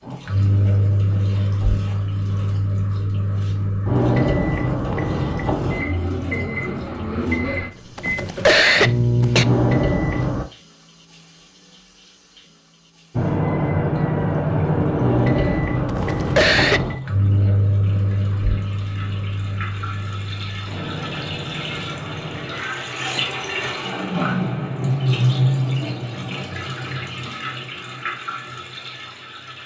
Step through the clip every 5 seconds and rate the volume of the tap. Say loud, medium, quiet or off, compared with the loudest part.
quiet, quiet, quiet, quiet, loud, loud.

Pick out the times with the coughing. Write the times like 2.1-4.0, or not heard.
7.5-9.4, 15.3-16.9.